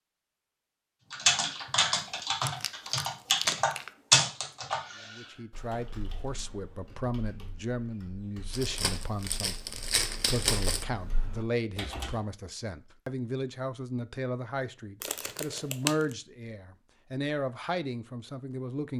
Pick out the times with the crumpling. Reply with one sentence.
You can hear the crumpling from 1.9 to 3.9 s, from 8.5 to 10.8 s and from 15.0 to 16.1 s.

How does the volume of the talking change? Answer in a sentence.
The volume of the talking stays about the same.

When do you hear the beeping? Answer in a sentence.
You can't hear the beeping here.